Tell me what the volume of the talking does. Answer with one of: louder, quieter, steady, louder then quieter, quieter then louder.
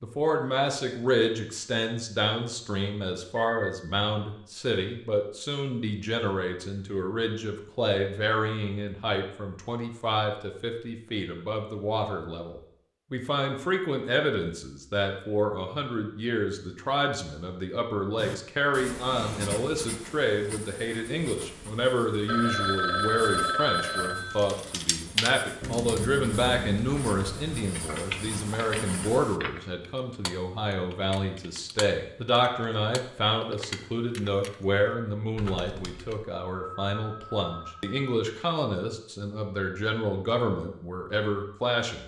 steady.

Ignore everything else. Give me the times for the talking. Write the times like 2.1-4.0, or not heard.
0.0-42.0.